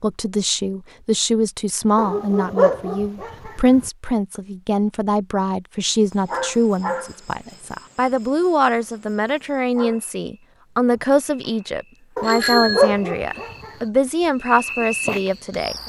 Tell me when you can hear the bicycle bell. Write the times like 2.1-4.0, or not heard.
12.2-12.9.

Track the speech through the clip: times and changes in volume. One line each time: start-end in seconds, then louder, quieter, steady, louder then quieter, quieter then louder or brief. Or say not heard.
0.0-15.8 steady.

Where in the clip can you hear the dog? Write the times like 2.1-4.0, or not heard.
1.9-3.9, 12.2-13.7.